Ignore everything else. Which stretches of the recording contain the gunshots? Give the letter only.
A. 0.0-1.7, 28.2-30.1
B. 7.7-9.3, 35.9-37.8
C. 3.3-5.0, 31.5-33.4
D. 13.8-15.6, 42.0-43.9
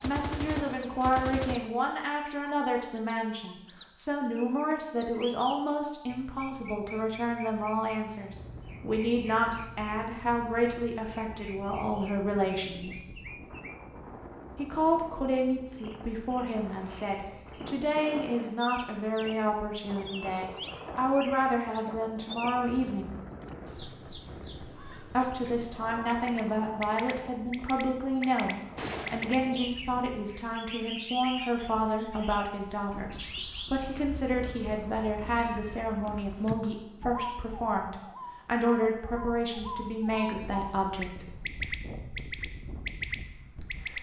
A.